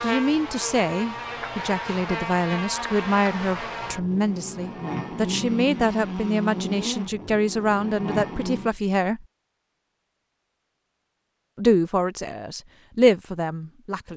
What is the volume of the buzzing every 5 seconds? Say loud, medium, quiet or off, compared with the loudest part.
loud, loud, off.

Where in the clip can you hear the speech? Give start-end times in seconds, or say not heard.
0.0-9.2, 11.6-14.1.